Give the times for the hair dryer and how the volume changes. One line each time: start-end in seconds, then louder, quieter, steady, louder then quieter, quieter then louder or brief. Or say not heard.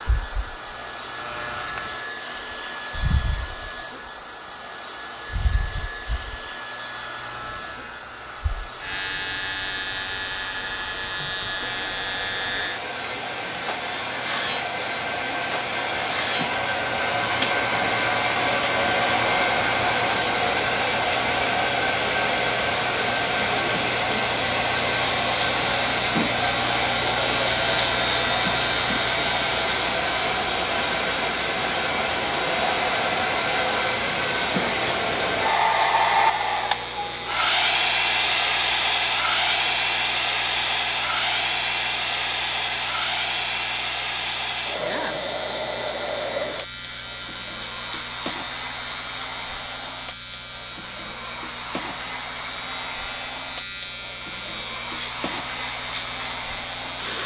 0.0-57.2 louder then quieter.